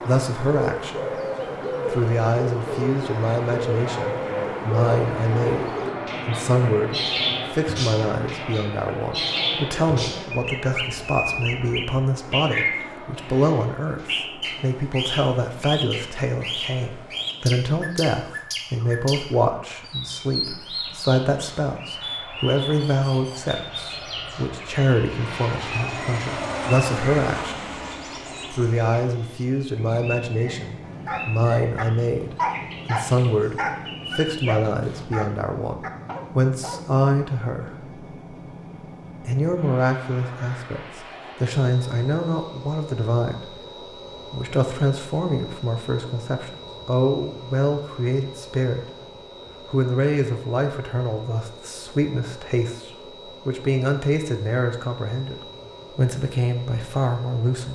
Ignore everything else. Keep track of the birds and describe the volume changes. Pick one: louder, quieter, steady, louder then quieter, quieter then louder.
quieter.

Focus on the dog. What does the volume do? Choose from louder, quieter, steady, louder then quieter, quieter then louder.
louder then quieter.